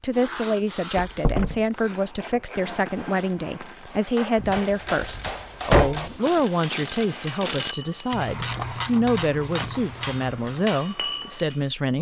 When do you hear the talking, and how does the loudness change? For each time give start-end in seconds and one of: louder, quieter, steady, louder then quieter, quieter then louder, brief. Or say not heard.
0.0-11.9 steady.